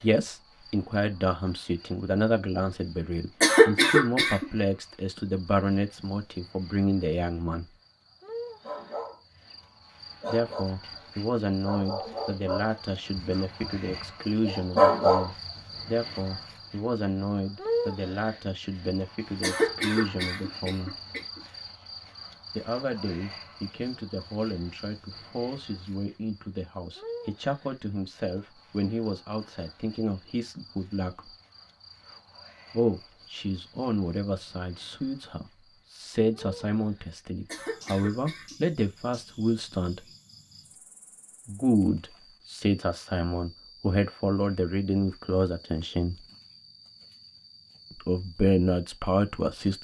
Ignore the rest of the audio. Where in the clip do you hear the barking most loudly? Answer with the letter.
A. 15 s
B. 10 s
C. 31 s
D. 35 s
A.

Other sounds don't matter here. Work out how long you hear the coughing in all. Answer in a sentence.
The coughing can be heard for 4 seconds in total.